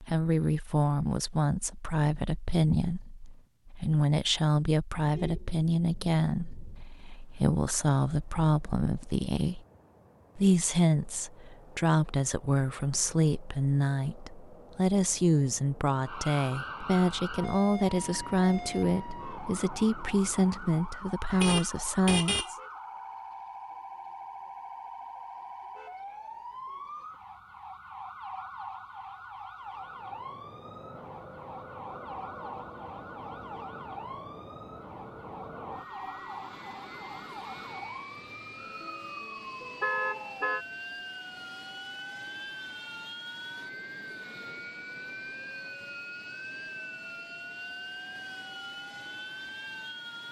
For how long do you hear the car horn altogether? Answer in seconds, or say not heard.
4 s.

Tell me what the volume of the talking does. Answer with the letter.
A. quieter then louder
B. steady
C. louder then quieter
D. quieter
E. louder
B.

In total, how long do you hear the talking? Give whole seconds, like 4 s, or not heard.
22 s.